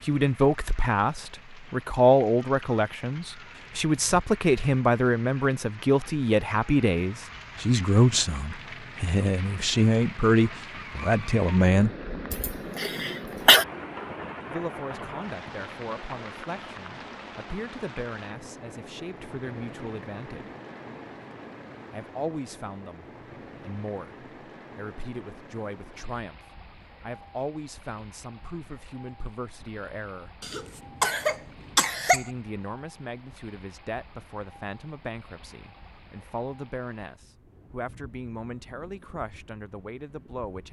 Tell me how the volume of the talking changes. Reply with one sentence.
The loudness of the talking goes down.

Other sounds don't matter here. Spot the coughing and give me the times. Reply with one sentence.
The coughing can be heard from 12.3 to 13.7 s and from 30.4 to 32.3 s.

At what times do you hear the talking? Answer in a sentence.
The talking can be heard from 0.1 to 11.9 s, from 14.4 to 20.5 s, from 21.9 to 30.3 s and from 32.1 to 40.6 s.